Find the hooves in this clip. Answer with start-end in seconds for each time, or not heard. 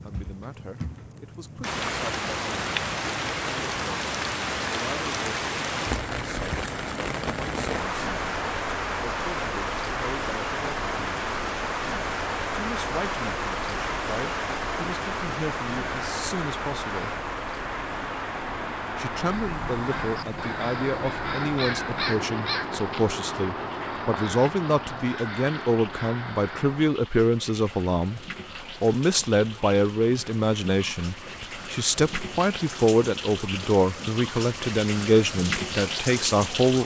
not heard.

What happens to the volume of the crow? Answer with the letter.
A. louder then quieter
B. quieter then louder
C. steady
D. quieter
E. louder
A.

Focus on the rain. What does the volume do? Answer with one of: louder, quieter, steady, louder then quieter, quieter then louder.
quieter then louder.